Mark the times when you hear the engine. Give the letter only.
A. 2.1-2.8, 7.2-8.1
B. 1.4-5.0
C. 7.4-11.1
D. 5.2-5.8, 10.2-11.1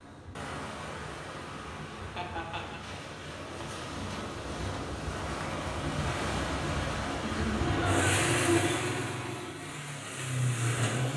C.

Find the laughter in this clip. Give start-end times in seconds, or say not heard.
2.1-2.8, 7.2-8.1.